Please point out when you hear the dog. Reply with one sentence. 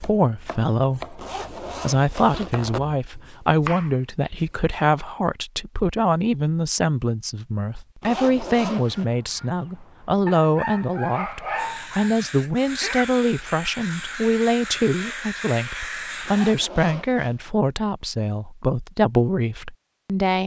You can hear the dog from 10.2 to 12.1 s.